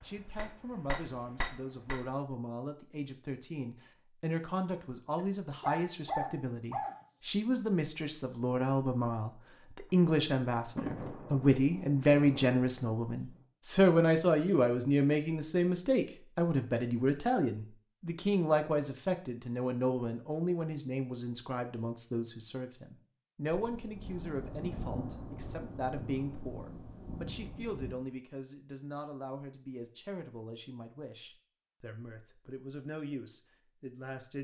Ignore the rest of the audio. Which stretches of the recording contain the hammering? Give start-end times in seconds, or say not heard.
0.0-2.1.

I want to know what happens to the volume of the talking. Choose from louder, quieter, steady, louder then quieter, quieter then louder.
louder then quieter.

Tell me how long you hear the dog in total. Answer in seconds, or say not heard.
2 s.